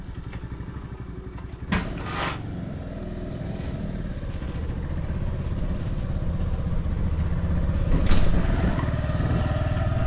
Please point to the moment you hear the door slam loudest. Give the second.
2 s.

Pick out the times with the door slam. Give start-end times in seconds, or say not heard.
1.7-2.4, 8.1-8.5.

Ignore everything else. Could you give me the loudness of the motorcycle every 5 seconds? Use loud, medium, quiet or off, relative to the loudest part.
medium, loud.